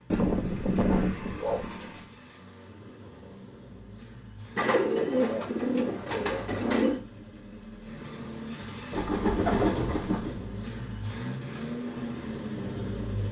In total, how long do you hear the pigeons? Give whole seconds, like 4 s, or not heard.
6 s.